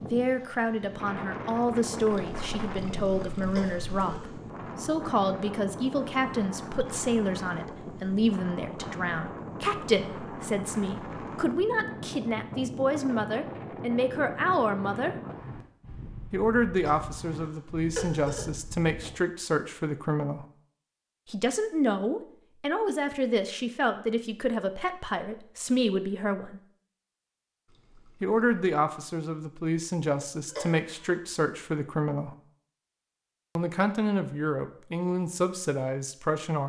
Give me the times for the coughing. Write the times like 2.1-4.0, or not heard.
3.5-4.3, 16.8-18.4, 30.4-31.2.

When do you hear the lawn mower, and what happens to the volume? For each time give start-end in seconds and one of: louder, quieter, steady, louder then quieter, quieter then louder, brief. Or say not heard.
not heard.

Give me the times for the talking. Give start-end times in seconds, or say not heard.
0.0-15.2, 16.3-20.4, 21.2-26.6, 28.2-32.4, 33.5-36.6.